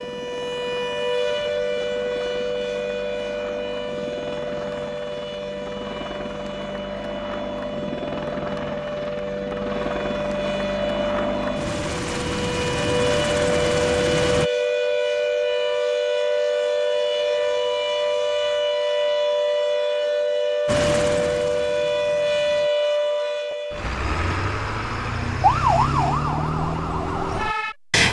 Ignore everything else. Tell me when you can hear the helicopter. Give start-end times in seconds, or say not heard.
0.0-14.5, 20.6-22.7.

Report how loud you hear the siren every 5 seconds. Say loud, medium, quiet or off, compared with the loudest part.
medium, medium, loud, loud, loud, loud.